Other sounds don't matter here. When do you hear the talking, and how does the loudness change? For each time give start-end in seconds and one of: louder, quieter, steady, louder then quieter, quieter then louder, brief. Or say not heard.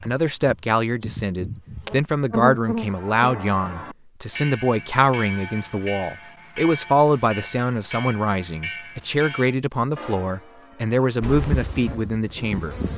0.0-12.8 steady.